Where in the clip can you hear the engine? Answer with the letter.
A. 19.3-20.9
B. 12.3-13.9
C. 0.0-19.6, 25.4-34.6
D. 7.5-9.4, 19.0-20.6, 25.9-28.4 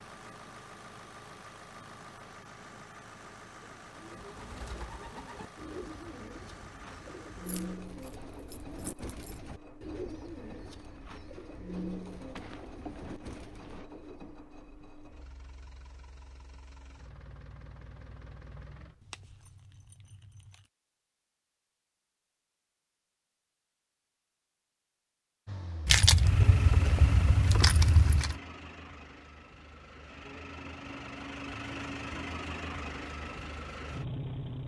C.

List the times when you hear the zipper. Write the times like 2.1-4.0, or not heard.
12.3-13.9.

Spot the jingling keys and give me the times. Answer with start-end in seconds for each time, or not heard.
7.5-9.4, 19.0-20.6, 25.9-28.4.